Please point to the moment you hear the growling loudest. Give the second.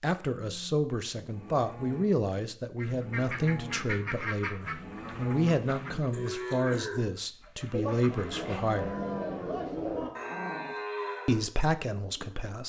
10 s.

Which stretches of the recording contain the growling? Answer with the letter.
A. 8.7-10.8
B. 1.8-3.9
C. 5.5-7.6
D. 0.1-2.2
A.